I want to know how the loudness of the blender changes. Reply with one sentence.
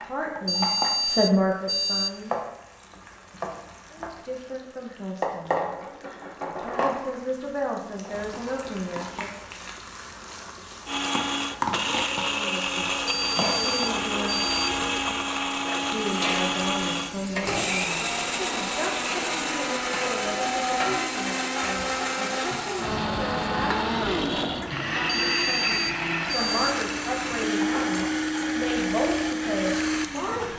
The volume of the blender stays about the same.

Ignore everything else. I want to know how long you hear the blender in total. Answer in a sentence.
You can hear the blender for 20 seconds altogether.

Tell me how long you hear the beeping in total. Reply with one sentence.
The beeping can be heard for 5 seconds in total.